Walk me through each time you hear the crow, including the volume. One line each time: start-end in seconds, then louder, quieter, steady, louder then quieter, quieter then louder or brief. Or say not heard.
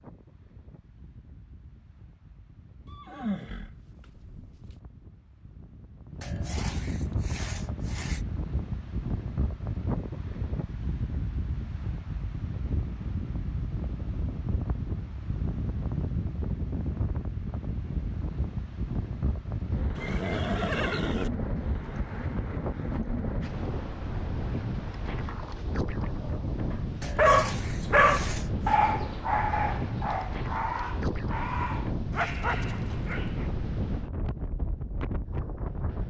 not heard.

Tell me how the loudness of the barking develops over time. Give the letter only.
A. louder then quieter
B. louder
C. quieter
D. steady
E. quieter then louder
C.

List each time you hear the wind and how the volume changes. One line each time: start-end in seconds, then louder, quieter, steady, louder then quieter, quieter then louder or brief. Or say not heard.
0.0-36.0 louder.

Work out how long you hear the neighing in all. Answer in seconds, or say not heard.
3 s.